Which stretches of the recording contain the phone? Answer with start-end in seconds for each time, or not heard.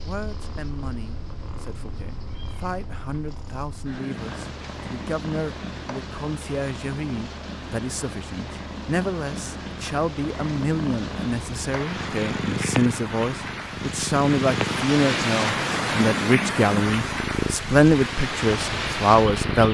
not heard.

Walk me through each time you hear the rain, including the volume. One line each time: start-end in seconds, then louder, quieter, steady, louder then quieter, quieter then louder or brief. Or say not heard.
4.2-19.6 louder.